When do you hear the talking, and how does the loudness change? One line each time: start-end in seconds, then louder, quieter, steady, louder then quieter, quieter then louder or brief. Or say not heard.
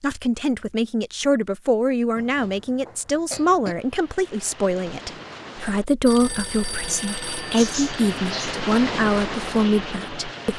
0.0-10.5 steady.